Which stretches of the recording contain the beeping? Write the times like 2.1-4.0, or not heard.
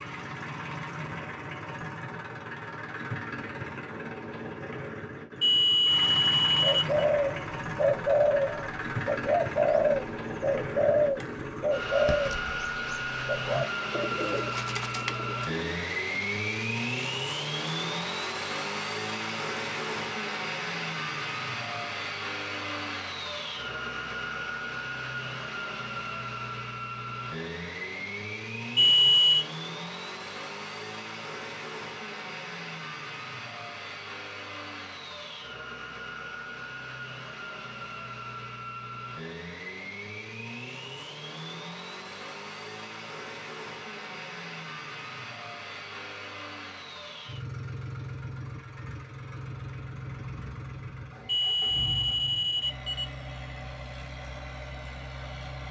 5.4-7.0, 28.8-29.4, 51.2-53.0.